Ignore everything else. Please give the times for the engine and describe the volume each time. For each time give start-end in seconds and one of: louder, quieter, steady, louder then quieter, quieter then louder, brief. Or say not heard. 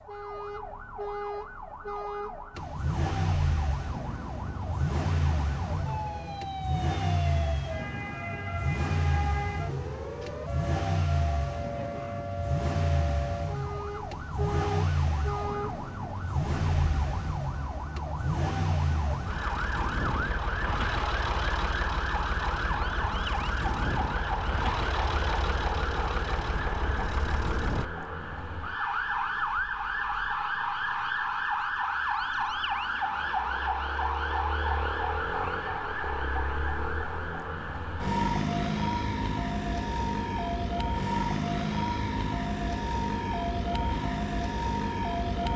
2.5-27.9 steady.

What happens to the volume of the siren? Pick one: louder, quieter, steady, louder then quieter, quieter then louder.
louder.